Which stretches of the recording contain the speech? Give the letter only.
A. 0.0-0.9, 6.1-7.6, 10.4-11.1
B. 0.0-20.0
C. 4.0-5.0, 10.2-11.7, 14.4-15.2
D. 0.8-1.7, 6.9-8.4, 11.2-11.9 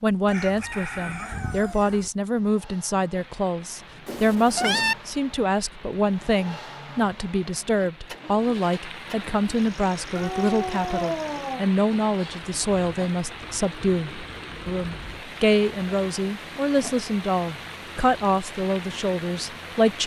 B.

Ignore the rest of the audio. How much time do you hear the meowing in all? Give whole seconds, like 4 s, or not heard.
3 s.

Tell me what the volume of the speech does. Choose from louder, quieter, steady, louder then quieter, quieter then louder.
steady.